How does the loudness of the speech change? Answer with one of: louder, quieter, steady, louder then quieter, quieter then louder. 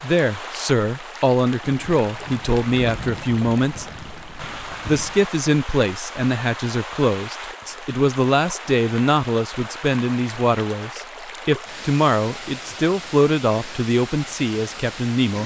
steady.